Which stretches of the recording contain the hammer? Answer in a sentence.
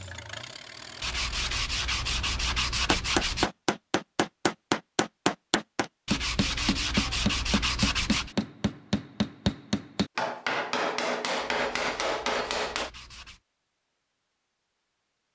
The hammer can be heard from 2.9 to 12.9 s.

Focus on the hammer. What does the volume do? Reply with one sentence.
The loudness of the hammer stays about the same.